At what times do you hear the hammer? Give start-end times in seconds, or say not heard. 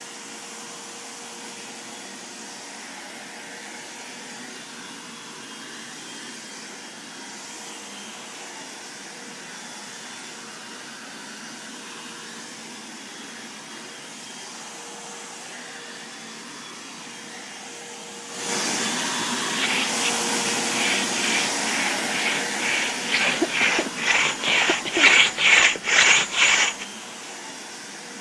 not heard.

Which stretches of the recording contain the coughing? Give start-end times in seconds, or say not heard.
23.2-25.1.